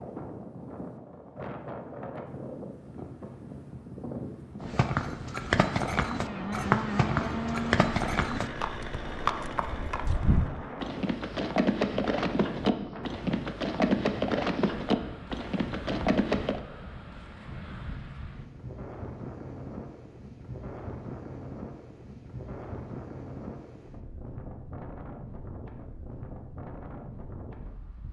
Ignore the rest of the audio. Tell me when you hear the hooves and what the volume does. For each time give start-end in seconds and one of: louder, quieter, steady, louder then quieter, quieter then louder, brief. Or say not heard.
4.6-16.6 steady.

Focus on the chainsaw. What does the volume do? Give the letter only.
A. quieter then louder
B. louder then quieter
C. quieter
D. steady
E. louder
C.